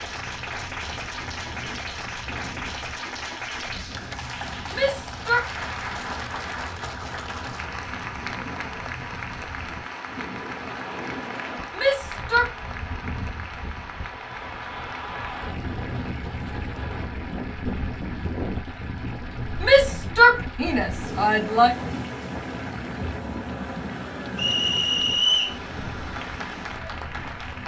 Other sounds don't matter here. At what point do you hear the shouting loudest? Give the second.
20 s.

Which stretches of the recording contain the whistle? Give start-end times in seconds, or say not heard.
24.4-25.6.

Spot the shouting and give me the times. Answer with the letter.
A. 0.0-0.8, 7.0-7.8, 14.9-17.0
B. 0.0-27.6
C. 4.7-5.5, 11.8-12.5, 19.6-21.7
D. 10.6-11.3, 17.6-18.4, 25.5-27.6
C.